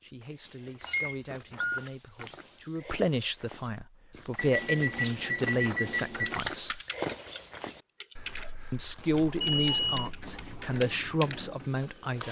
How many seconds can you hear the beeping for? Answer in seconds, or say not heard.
4 s.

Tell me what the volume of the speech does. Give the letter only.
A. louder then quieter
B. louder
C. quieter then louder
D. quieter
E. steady
B.